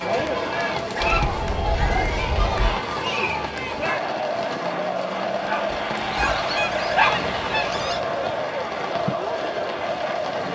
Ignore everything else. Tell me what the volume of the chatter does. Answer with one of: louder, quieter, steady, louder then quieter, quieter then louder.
steady.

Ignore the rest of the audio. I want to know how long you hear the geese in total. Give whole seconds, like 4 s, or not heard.
4 s.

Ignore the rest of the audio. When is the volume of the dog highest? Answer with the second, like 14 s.
7 s.